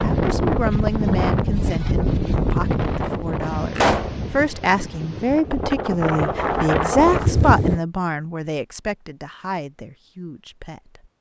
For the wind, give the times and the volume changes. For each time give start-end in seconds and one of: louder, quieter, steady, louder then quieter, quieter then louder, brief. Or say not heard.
0.0-7.8 quieter then louder.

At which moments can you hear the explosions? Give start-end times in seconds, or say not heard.
3.8-4.2.